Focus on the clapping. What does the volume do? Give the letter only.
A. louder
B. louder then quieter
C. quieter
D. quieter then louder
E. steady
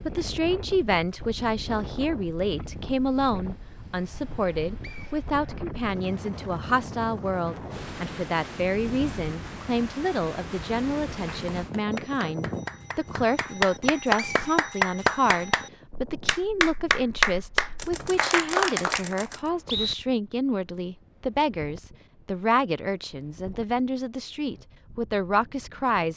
A.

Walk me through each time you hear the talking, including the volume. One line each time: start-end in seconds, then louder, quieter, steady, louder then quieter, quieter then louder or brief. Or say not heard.
0.1-26.1 steady.